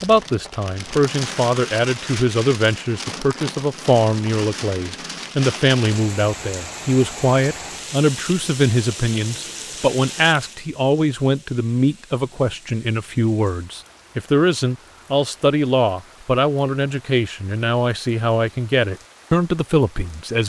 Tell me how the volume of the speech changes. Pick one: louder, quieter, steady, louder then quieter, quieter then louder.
steady.